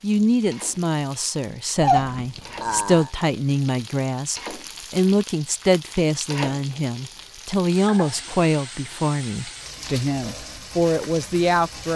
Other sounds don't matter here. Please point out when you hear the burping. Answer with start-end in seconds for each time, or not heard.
1.8-3.1.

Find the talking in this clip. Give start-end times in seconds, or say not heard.
0.0-11.9.